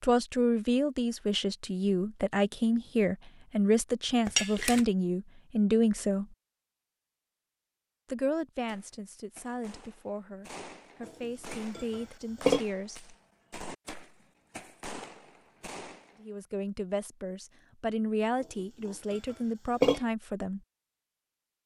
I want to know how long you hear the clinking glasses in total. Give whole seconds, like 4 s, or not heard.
4 s.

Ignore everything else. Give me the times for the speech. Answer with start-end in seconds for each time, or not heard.
0.0-6.3, 8.1-13.2, 16.2-20.6.